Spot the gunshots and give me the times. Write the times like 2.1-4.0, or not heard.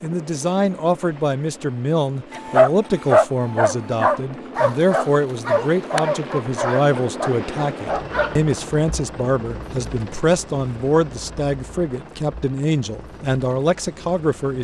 not heard.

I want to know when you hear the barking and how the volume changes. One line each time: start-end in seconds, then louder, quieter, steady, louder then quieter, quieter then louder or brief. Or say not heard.
2.3-8.4 quieter.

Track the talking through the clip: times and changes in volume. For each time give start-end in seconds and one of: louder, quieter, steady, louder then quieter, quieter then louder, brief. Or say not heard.
0.0-14.5 steady.